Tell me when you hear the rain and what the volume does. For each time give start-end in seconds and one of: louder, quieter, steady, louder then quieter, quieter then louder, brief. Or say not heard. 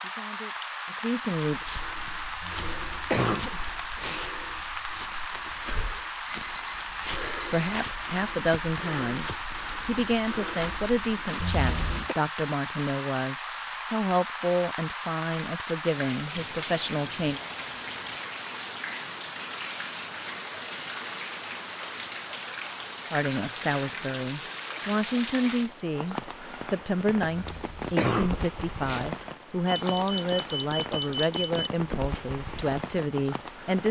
0.0-33.8 steady.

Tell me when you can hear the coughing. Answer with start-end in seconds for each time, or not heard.
2.4-4.2, 11.3-12.2, 27.2-29.1.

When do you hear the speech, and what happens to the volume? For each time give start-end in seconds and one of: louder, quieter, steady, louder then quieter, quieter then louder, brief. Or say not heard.
0.0-1.6 brief
7.3-17.4 steady
23.1-33.8 steady.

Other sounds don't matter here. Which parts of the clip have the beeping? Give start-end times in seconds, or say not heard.
6.3-7.8, 16.4-18.1, 29.6-31.7.